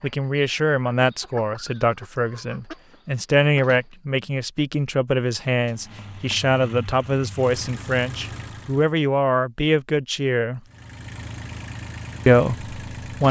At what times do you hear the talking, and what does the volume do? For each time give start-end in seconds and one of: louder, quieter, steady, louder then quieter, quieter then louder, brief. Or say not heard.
0.0-10.6 steady
12.2-13.2 brief.